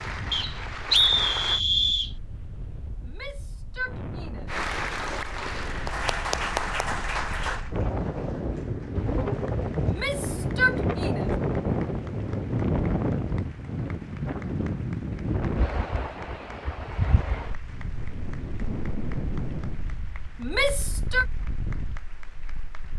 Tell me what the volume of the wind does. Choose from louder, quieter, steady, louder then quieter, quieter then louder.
louder then quieter.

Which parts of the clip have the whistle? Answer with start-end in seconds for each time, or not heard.
0.3-2.1.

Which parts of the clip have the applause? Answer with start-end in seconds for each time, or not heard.
0.0-1.6, 4.5-22.9.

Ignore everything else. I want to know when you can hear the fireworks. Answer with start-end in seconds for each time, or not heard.
not heard.